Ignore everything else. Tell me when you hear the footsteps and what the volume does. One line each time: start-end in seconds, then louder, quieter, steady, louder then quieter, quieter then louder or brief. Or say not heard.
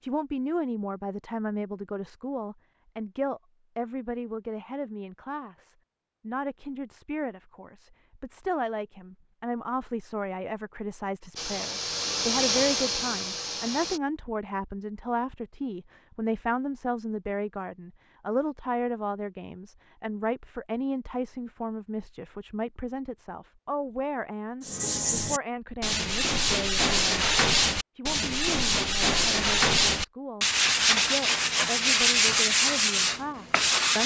not heard.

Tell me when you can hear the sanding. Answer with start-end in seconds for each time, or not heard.
24.6-34.0.